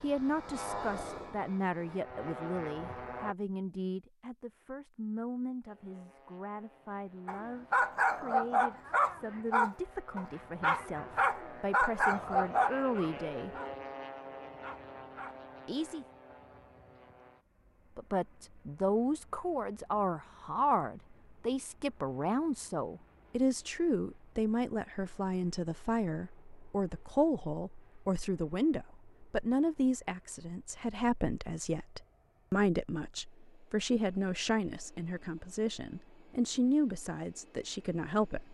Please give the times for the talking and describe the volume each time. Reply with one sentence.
The talking can be heard from 0.0 to 13.5 s, getting quieter then louder; briefly from 15.7 to 16.1 s; and from 17.9 to 38.4 s, at a steady volume.